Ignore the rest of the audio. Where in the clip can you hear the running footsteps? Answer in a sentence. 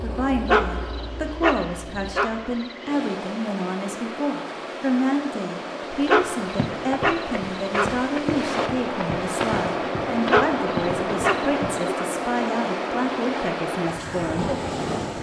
You can hear the running footsteps from 6.0 to 11.8 s.